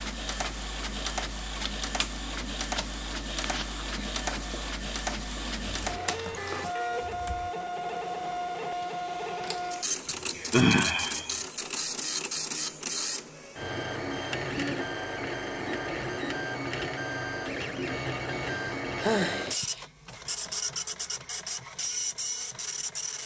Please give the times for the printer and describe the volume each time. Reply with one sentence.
You can hear the printer from 0.0 to 23.2 s, at a steady volume.